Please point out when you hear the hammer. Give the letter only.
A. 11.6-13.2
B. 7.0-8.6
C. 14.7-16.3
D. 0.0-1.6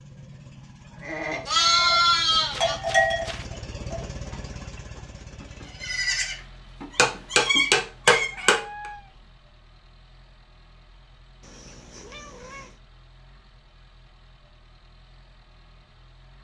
B.